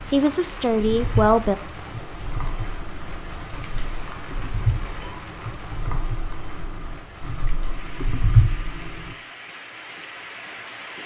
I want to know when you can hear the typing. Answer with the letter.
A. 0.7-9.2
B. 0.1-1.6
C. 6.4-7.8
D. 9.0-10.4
A.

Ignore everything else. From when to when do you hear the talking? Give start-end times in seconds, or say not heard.
0.1-1.6.